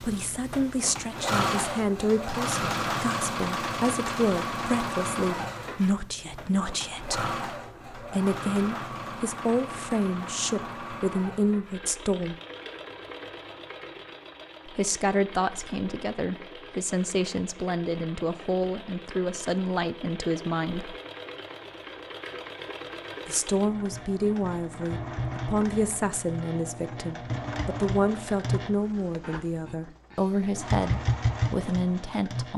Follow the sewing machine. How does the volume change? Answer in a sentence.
The volume of the sewing machine goes down, then up.